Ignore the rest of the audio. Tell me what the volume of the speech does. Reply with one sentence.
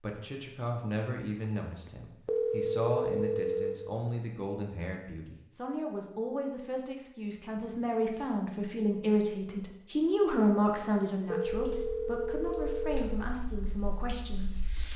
The volume of the speech goes up, then down.